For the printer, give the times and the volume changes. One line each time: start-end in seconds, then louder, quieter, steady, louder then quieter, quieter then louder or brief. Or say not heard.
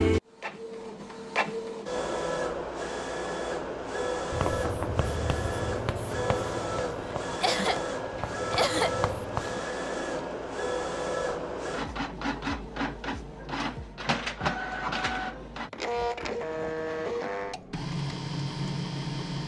0.0-19.4 steady.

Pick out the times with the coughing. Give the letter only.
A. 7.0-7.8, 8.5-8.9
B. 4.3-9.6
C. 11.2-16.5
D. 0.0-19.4
A.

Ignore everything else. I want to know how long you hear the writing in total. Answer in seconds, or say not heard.
5 s.